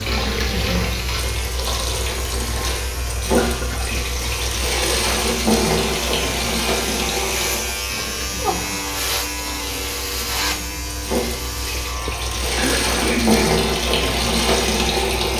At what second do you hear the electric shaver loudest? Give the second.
9 s.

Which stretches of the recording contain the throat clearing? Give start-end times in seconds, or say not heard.
3.4-4.3, 12.6-13.6.